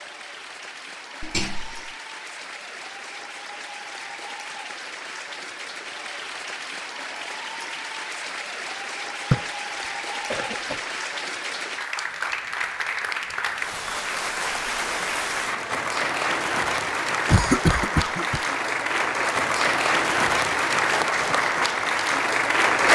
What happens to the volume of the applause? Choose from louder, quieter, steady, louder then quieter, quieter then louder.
louder.